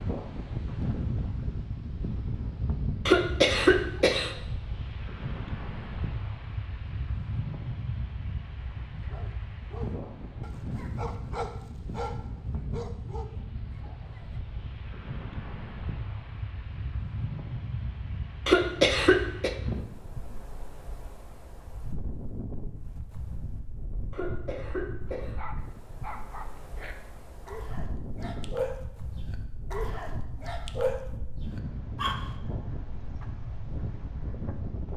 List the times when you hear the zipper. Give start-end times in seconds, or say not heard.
not heard.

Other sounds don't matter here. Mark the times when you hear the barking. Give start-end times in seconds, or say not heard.
9.0-14.4, 25.1-32.4.